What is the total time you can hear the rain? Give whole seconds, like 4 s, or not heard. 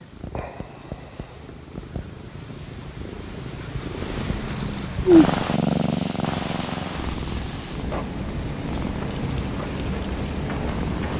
7 s.